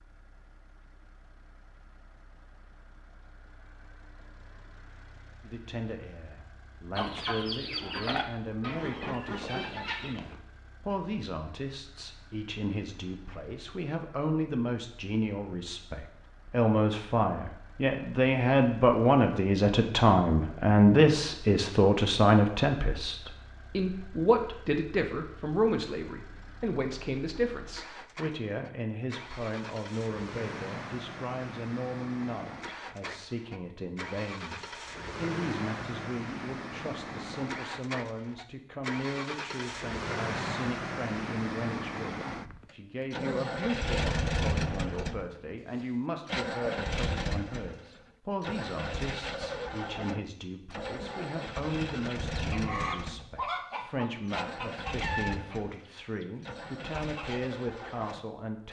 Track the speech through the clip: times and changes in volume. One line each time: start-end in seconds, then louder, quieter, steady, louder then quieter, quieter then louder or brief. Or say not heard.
5.4-58.6 louder then quieter.